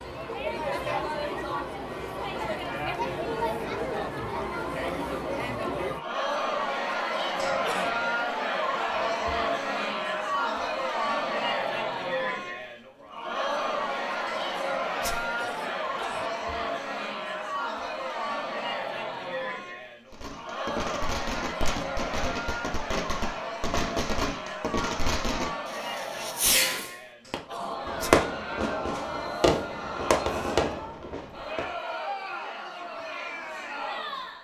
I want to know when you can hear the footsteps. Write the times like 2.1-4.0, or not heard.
not heard.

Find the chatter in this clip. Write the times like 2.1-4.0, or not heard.
0.0-34.3.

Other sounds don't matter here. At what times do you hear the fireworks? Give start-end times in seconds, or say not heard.
20.1-31.7.